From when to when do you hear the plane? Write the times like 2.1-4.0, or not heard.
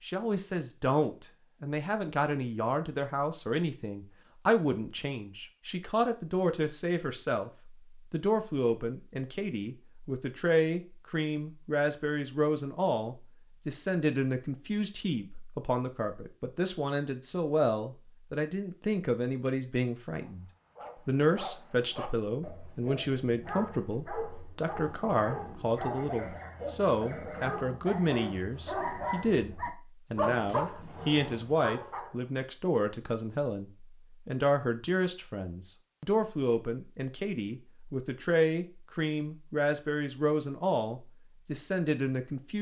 not heard.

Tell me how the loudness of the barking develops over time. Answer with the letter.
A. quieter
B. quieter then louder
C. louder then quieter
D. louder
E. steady
D.